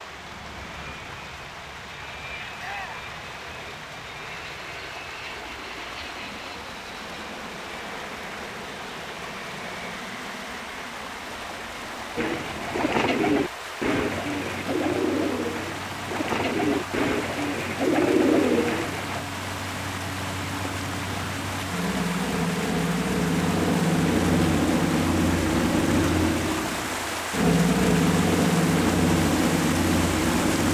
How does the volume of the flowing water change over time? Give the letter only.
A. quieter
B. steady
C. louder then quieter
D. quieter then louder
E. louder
E.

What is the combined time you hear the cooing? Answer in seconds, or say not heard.
7 s.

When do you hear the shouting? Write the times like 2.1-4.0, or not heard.
2.5-3.1.